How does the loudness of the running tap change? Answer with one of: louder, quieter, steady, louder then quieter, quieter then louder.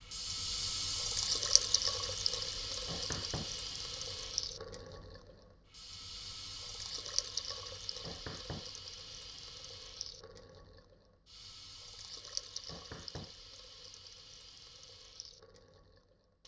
quieter.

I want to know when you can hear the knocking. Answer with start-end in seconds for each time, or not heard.
2.9-3.5, 8.0-8.7, 12.7-13.3.